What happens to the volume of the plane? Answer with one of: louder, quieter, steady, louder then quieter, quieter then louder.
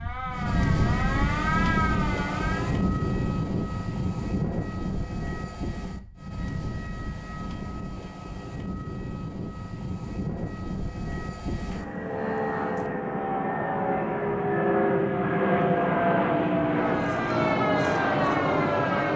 quieter then louder.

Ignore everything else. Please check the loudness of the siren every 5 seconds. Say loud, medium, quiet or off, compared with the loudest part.
loud, off, off, loud.